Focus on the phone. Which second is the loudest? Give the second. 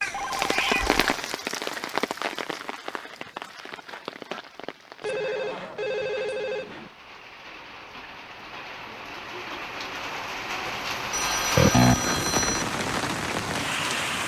12 s.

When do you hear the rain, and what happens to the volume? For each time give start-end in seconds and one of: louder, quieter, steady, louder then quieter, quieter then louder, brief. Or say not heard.
0.0-14.2 quieter then louder.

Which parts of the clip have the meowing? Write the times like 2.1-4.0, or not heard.
0.0-1.4.